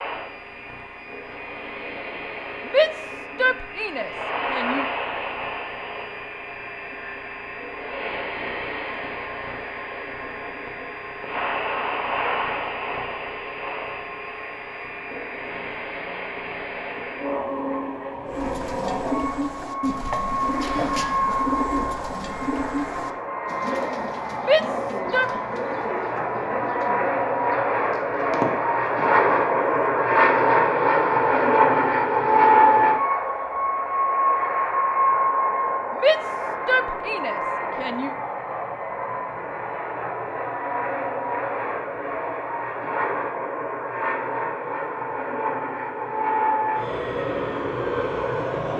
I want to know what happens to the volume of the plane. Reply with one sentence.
The loudness of the plane goes up, then down.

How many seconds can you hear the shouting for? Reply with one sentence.
The shouting can be heard for 5 seconds in total.